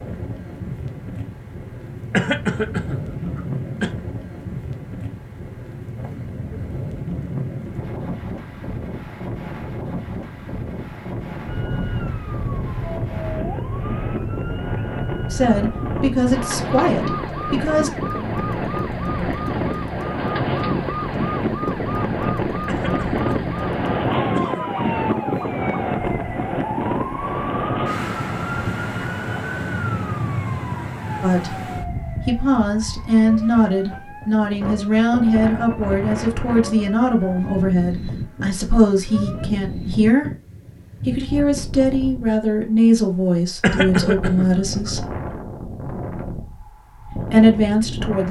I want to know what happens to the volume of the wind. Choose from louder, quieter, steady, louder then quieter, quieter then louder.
louder then quieter.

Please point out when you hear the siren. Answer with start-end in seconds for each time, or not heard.
11.4-39.5.